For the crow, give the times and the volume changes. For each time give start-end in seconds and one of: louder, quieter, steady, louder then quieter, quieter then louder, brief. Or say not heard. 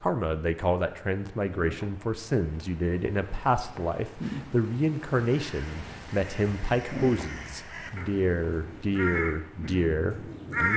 5.3-10.7 louder then quieter.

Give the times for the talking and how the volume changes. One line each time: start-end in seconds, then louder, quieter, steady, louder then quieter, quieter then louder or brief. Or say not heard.
0.0-10.7 steady.